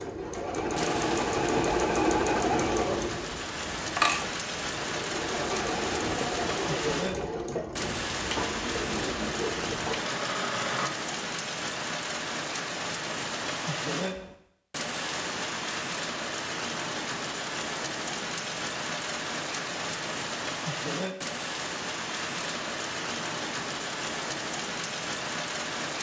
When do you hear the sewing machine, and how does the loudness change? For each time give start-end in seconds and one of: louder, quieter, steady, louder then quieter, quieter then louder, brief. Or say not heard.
0.0-10.9 quieter.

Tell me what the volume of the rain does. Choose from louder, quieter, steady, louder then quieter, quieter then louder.
steady.